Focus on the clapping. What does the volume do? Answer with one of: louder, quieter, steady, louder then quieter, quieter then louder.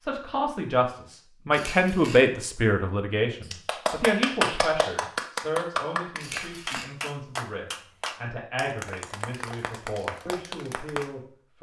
quieter.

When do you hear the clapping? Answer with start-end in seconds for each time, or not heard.
3.5-11.1.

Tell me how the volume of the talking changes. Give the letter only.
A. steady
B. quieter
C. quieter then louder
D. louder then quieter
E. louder
B.